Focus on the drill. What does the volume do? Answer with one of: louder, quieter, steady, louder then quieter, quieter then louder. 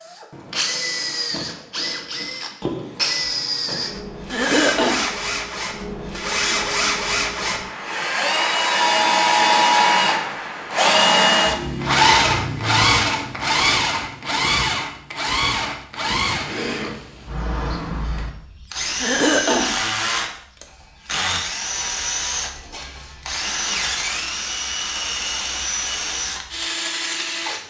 louder then quieter.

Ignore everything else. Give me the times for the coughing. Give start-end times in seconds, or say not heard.
4.3-5.1, 19.0-19.8.